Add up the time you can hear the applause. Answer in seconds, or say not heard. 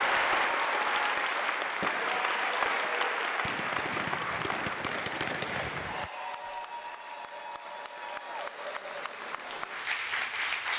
11 s.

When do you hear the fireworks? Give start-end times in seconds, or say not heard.
1.6-6.1.